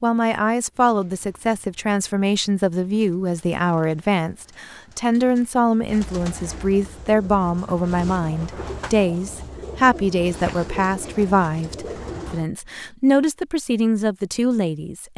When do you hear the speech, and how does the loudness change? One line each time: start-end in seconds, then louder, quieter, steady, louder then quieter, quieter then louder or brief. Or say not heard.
0.0-15.1 steady.